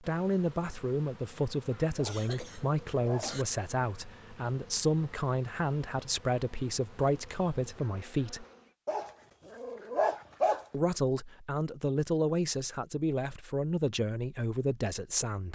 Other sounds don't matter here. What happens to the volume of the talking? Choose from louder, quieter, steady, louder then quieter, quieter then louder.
steady.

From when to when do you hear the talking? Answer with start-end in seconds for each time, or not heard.
0.0-8.4, 10.7-15.5.